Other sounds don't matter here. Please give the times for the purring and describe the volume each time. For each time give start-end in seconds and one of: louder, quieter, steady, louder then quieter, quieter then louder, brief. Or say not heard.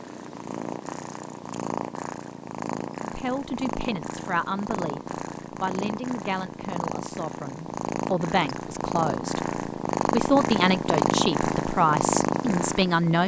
0.0-13.2 louder.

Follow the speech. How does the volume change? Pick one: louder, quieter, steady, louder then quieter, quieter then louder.
louder.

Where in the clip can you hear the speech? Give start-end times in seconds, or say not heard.
3.0-9.4, 10.1-13.2.